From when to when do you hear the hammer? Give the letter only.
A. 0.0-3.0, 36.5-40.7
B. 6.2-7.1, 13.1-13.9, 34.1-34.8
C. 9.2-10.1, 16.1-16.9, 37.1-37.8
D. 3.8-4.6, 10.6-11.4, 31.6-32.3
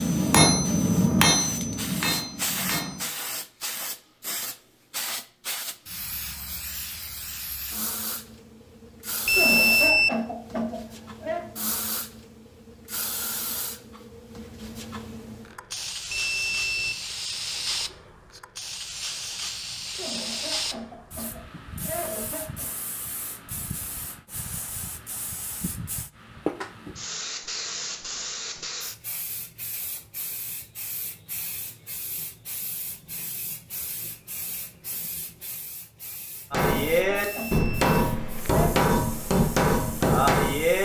A.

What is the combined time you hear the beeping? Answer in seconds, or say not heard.
2 s.